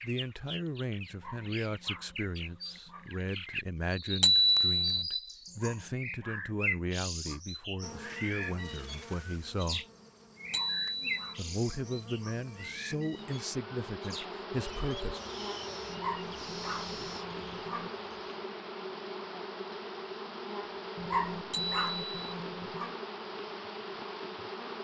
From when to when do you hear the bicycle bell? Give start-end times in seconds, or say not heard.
4.2-5.0, 10.5-11.3, 21.5-22.3.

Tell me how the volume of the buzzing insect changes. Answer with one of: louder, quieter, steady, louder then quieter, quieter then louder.
louder.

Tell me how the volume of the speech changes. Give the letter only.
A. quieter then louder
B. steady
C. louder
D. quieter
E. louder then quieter
B.